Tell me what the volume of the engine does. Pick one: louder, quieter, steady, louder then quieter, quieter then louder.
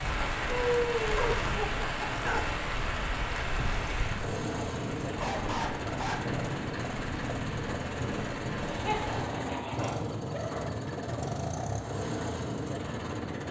louder.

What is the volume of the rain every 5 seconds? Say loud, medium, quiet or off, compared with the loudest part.
loud, medium, off.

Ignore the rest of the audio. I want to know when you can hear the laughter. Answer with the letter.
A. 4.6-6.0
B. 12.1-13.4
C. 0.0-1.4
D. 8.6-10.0
D.